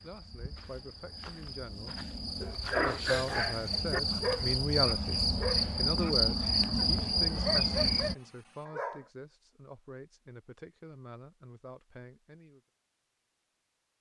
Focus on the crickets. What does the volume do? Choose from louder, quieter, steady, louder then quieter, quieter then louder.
louder.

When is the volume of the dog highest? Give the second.
3 s.